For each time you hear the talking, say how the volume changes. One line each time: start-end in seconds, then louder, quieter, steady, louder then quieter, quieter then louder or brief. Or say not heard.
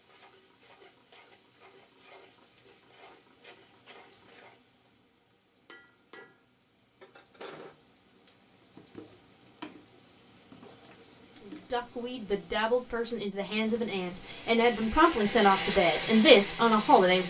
11.4-17.2 louder.